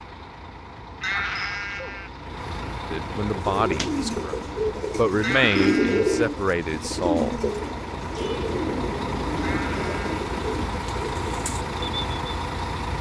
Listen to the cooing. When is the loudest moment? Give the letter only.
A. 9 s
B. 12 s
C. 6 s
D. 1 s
C.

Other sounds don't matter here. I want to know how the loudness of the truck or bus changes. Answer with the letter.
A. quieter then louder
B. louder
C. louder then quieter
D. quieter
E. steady
B.